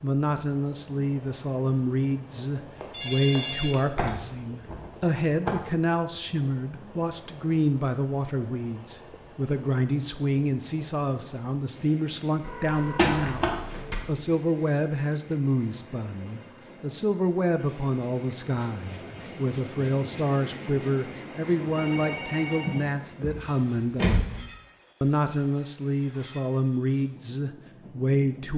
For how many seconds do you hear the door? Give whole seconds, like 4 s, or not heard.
4 s.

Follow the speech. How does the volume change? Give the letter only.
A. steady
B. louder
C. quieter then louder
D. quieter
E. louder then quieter
A.